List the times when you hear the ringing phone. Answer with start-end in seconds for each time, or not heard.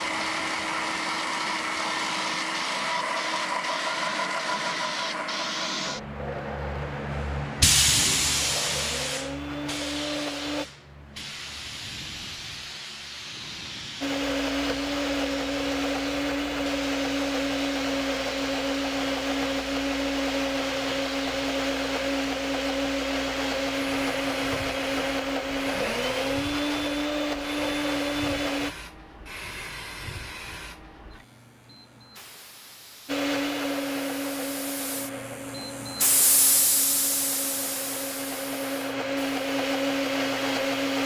not heard.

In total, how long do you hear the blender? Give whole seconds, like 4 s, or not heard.
33 s.